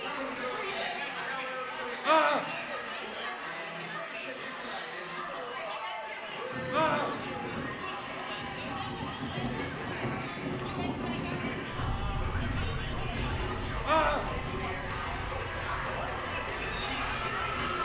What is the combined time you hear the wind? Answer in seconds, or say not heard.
11 s.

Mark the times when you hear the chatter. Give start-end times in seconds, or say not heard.
0.0-17.7.